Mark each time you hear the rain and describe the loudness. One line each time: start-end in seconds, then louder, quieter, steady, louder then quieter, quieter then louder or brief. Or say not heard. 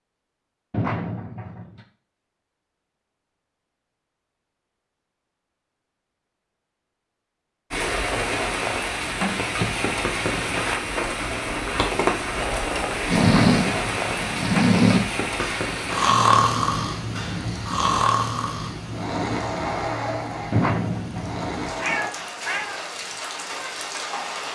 7.7-24.5 quieter.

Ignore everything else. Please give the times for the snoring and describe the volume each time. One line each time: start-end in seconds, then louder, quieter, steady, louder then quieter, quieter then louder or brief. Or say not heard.
13.1-22.1 quieter.